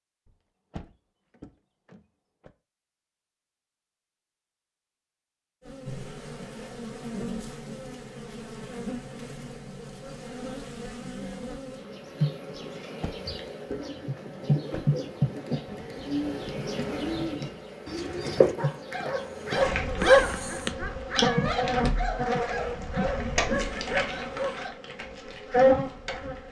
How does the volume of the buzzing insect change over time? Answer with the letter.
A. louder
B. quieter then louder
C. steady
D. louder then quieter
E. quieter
A.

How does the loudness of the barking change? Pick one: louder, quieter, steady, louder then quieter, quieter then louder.
louder then quieter.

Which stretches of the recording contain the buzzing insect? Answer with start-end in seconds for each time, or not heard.
5.6-26.4.